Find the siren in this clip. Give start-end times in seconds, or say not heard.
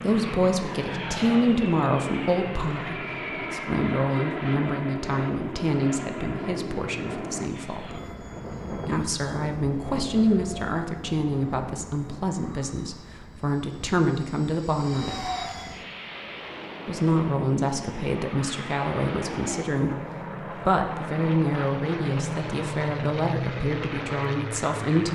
not heard.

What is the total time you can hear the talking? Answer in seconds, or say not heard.
23 s.